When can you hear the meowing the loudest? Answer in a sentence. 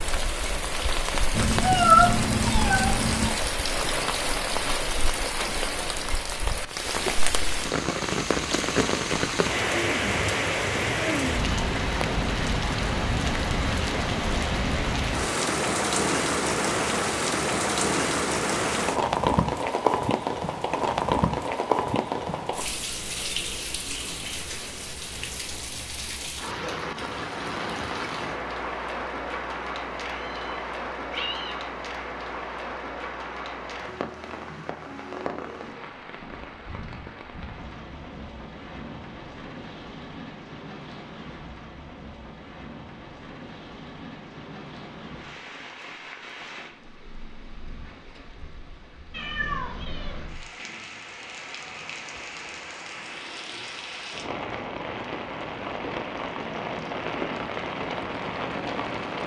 The loudest moment of the meowing is at 2 seconds.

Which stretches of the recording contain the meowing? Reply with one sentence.
The meowing can be heard from 1.3 to 3.3 s, from 30.1 to 31.6 s and from 49.1 to 50.4 s.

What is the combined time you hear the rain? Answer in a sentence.
You can hear the rain for 59 seconds altogether.